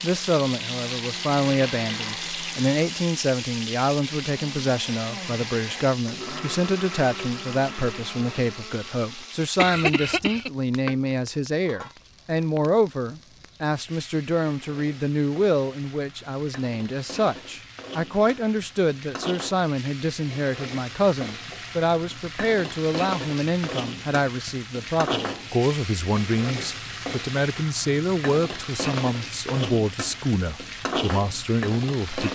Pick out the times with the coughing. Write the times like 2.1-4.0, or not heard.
9.6-10.5.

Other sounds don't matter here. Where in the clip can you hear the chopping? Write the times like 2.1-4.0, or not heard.
not heard.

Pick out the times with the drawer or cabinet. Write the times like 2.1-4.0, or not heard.
not heard.